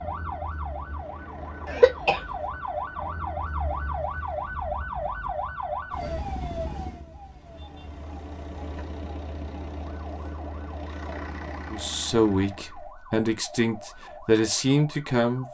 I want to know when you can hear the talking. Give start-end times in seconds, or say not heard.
11.7-15.4.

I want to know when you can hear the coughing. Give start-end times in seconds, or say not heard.
1.6-2.2.